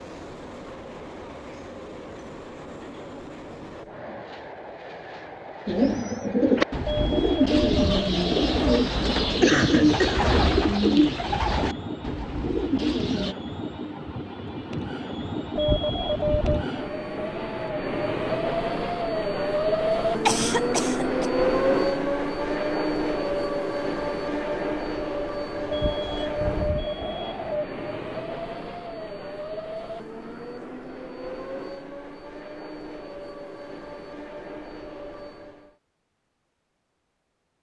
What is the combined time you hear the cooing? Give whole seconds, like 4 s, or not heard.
8 s.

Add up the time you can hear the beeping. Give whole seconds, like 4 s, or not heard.
5 s.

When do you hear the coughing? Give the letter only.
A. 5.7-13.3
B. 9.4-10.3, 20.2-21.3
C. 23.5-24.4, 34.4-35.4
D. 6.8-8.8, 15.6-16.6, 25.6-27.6
B.